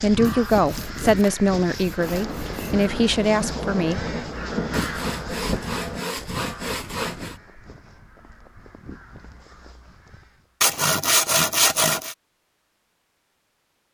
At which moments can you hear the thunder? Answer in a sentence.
The thunder can be heard from 1.9 to 6.0 s.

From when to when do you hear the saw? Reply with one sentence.
You can hear the saw from 0.2 to 2.9 s, from 4.7 to 7.4 s and from 10.6 to 12.2 s.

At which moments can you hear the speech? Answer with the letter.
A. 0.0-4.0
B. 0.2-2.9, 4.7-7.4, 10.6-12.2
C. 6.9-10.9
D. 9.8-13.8
A.